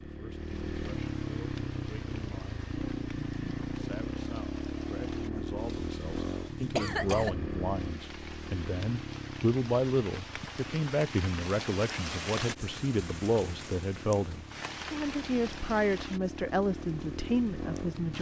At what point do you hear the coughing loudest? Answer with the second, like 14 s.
7 s.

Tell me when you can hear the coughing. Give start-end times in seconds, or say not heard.
5.6-7.3.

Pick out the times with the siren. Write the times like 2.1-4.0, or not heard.
not heard.